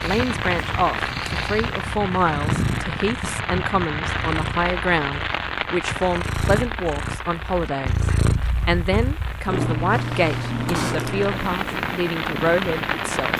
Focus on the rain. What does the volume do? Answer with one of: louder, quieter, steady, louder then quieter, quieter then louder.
quieter then louder.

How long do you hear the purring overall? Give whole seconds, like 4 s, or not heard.
13 s.